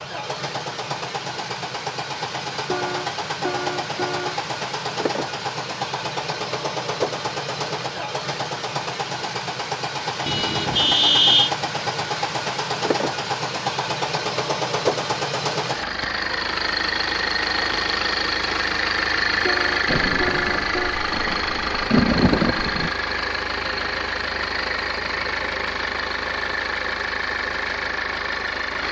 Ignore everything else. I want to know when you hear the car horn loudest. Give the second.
11 s.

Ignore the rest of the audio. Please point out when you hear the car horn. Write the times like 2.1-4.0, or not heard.
2.6-4.4, 10.2-11.5, 19.4-20.9.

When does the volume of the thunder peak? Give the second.
22 s.